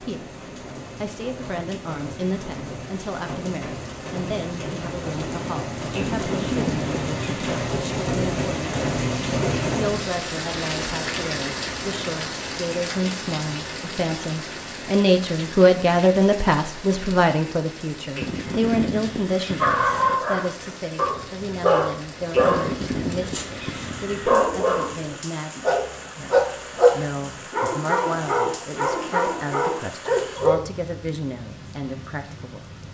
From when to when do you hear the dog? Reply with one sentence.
You can hear the dog from 19.6 to 30.6 s.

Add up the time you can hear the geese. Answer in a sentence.
You can hear the geese for 6 seconds altogether.